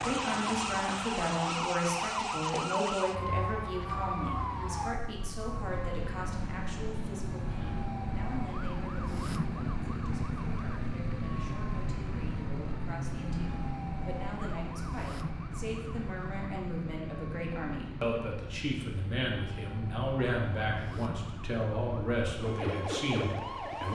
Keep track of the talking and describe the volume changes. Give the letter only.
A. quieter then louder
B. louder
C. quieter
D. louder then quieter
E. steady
A.